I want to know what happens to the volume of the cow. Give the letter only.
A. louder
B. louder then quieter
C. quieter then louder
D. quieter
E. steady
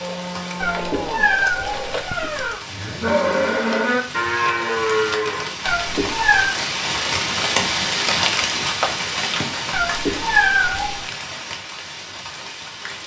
A.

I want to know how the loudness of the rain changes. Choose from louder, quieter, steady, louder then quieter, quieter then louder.
louder then quieter.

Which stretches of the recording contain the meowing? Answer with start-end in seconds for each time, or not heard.
0.6-2.6, 5.7-6.5, 9.7-11.1.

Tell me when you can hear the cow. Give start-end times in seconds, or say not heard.
0.0-5.5.